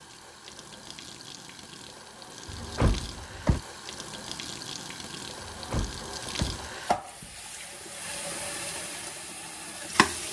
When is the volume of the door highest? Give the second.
3 s.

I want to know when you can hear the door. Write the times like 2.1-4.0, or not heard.
2.5-3.6, 5.4-6.8.